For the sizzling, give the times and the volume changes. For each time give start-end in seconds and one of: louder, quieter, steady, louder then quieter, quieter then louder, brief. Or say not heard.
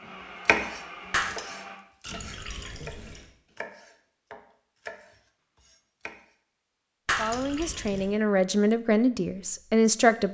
not heard.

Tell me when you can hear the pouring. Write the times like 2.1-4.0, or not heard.
2.0-3.3, 7.2-8.2.